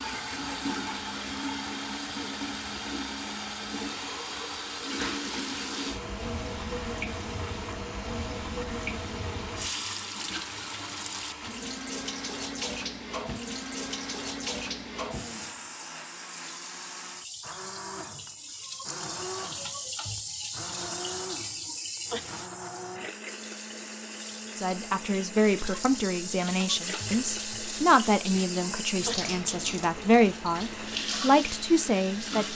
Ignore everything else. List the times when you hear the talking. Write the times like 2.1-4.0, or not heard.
24.6-32.5.